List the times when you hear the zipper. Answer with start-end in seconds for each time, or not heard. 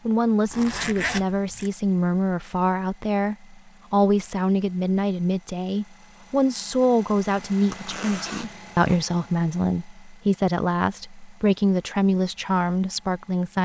0.5-1.7, 7.7-9.1.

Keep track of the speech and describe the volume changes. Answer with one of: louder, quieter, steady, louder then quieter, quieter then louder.
steady.